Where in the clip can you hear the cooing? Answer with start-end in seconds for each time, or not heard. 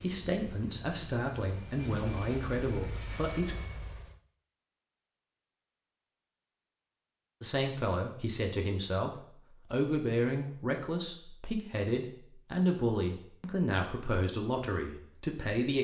not heard.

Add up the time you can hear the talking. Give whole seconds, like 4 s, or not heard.
12 s.